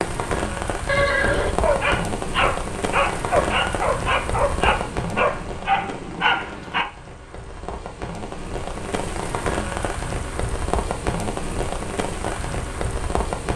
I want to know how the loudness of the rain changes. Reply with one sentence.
The loudness of the rain goes down, then up.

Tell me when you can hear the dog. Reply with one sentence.
You can hear the dog from 1.6 to 6.8 s.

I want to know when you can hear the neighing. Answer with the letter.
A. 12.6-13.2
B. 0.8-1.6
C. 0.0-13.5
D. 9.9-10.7
B.